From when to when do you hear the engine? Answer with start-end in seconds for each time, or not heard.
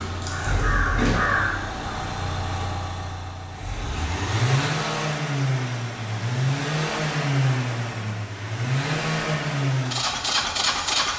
0.0-11.1.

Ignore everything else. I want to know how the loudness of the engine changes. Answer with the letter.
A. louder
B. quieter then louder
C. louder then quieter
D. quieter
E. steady
A.